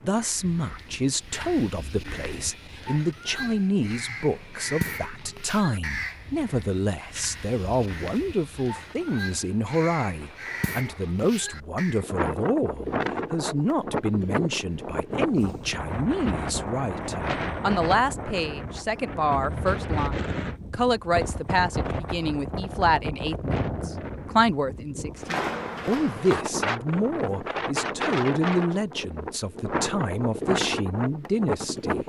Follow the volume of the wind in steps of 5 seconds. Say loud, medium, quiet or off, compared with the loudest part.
quiet, quiet, loud, loud, loud, loud, loud.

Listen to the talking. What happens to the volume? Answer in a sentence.
The volume of the talking stays about the same.